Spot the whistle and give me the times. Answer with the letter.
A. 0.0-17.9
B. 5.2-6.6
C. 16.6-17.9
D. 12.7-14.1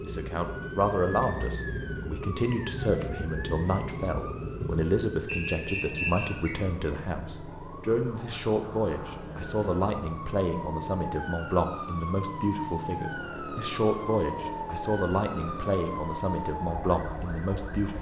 B.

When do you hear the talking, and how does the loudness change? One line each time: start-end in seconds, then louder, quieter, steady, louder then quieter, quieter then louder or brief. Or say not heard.
0.0-17.9 steady.